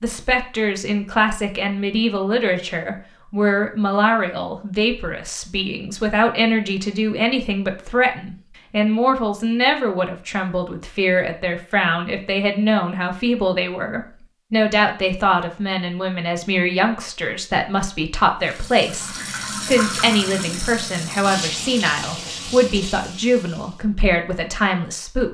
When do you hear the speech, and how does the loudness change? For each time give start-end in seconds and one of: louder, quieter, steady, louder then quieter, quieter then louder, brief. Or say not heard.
0.0-25.2 steady.